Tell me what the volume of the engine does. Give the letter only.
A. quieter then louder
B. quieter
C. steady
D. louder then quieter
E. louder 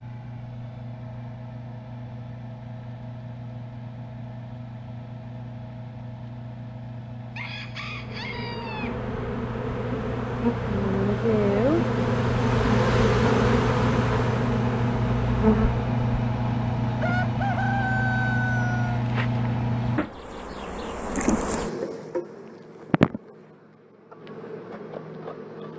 E.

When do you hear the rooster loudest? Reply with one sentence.
The volume of the rooster peaks at 18 seconds.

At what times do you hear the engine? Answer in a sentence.
You can hear the engine from 0.0 to 20.0 s.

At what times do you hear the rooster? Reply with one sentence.
The rooster can be heard from 7.3 to 8.9 s and from 17.0 to 19.0 s.